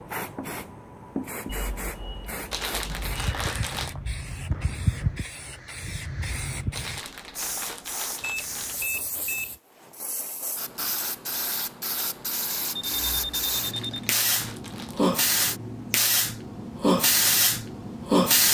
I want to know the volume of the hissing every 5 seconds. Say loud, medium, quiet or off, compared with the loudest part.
medium, quiet, medium, loud.